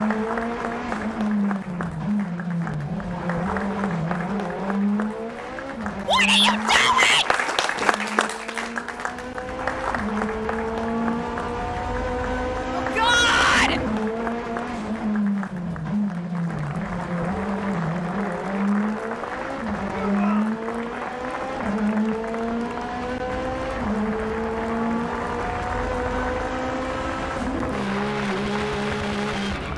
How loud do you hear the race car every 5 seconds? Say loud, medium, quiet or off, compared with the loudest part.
loud, medium, loud, loud, loud, loud.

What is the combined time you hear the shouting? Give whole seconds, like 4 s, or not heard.
3 s.